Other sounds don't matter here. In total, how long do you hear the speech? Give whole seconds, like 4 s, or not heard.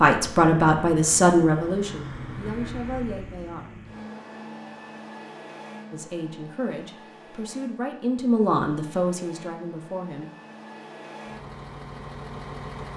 8 s.